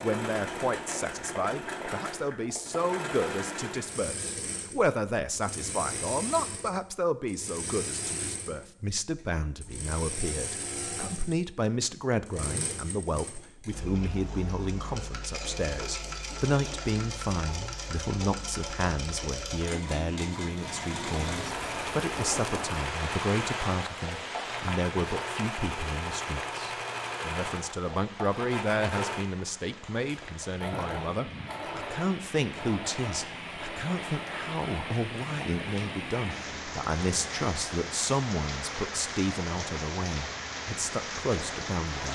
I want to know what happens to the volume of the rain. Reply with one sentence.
The volume of the rain goes down, then up.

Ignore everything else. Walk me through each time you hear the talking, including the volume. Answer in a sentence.
You can hear the talking from 0.0 to 42.0 s, at a steady volume.